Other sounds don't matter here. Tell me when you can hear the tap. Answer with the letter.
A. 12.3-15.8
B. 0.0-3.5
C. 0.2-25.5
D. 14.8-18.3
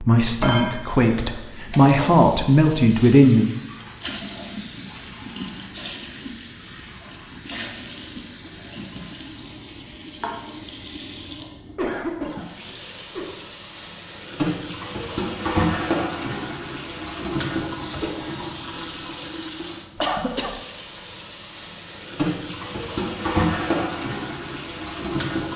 C.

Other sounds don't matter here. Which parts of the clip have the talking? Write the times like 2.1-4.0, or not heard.
0.0-3.5.